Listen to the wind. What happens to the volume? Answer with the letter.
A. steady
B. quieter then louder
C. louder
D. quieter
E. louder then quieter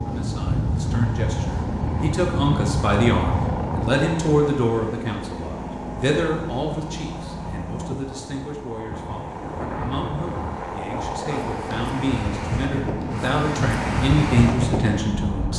B.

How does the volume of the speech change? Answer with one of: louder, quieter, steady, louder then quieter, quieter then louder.
quieter then louder.